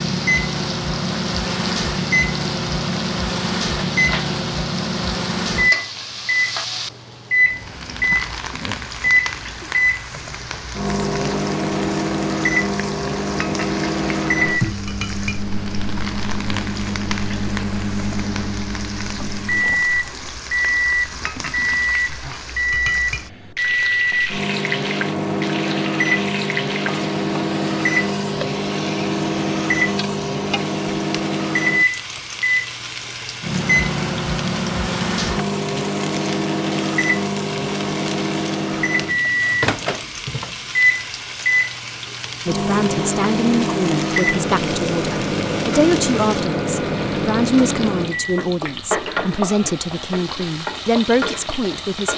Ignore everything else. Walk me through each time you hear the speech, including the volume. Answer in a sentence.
The speech can be heard from 42.5 to 52.1 s, at a steady volume.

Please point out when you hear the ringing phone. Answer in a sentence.
You can't hear the ringing phone here.